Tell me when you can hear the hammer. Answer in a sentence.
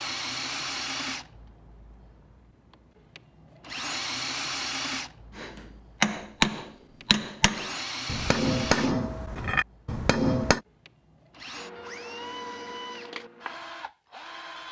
The hammer can be heard from 5.3 to 10.6 s.